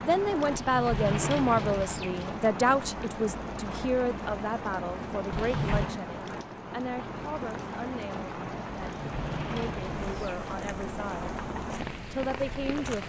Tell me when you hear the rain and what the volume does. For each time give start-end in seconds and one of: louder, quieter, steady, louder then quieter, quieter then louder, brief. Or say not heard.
0.0-13.0 steady.